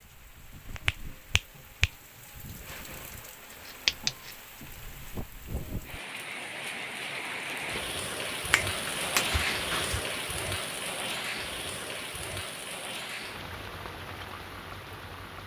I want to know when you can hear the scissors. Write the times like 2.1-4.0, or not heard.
3.6-4.3.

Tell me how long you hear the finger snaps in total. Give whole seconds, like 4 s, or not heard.
3 s.